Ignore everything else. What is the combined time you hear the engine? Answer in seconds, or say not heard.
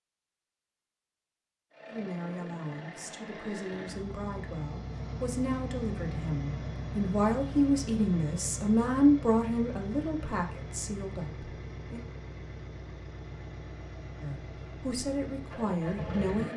15 s.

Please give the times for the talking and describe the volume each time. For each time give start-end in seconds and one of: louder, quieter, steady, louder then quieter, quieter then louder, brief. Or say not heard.
1.9-12.1 louder then quieter
14.2-16.5 brief.